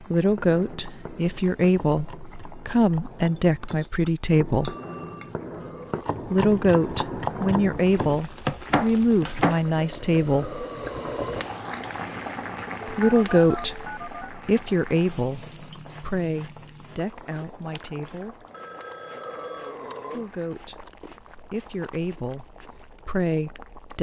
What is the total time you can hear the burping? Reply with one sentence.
You can hear the burping for 3 seconds altogether.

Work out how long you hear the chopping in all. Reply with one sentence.
You can hear the chopping for 9 seconds altogether.